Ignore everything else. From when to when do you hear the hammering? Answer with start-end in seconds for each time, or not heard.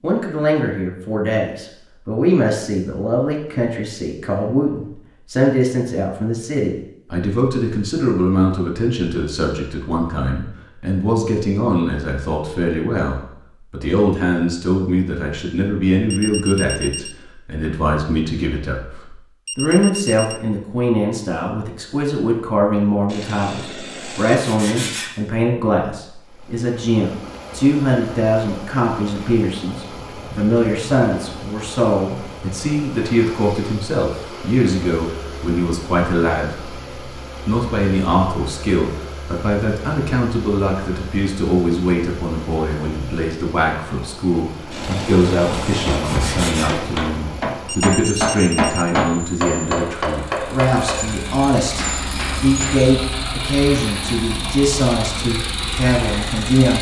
45.9-52.9.